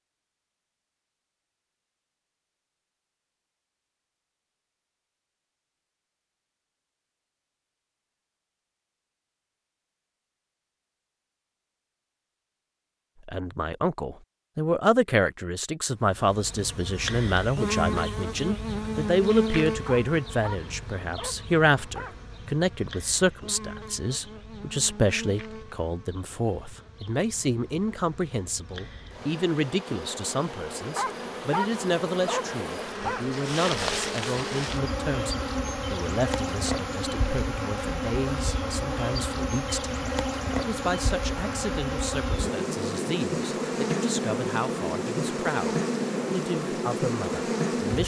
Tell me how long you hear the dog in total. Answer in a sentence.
You can hear the dog for 5 seconds altogether.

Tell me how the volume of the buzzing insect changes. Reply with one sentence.
The volume of the buzzing insect goes down, then up.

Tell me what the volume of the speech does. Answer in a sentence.
The volume of the speech goes down.